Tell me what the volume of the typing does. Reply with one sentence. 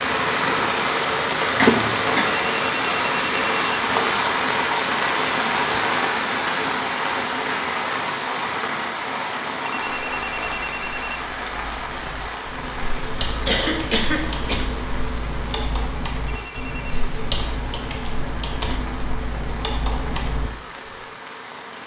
The loudness of the typing goes up.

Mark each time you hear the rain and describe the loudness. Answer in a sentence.
You can hear the rain from 0.0 to 21.8 s, getting quieter.